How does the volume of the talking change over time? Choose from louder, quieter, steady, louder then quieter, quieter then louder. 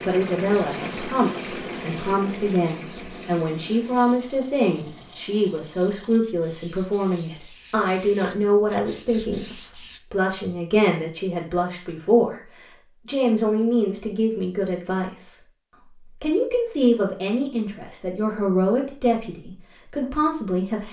steady.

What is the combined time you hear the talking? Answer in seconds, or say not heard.
20 s.